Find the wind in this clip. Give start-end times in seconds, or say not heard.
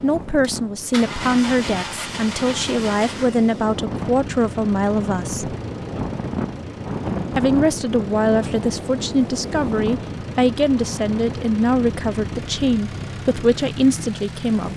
0.0-14.7.